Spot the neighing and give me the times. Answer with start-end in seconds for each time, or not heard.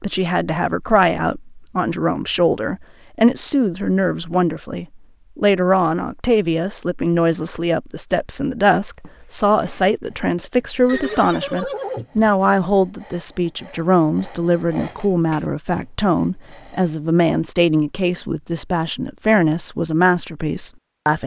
10.8-12.3.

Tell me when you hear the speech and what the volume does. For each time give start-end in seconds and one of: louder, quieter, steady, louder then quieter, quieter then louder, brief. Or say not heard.
0.0-21.2 steady.